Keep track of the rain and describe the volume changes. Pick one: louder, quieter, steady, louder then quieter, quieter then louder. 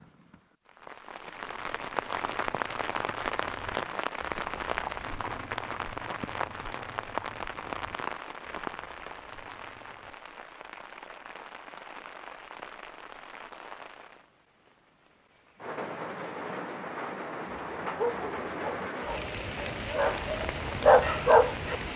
quieter then louder.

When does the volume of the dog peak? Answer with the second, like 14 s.
21 s.